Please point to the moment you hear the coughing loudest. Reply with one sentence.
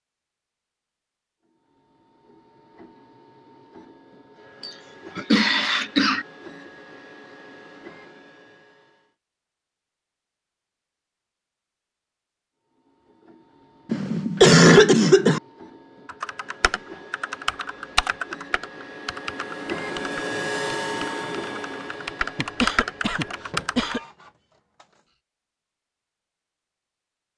The loudest moment of the coughing is at 15 seconds.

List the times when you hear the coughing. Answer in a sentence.
The coughing can be heard from 4.6 to 6.2 s, from 13.9 to 15.4 s and from 22.4 to 24.0 s.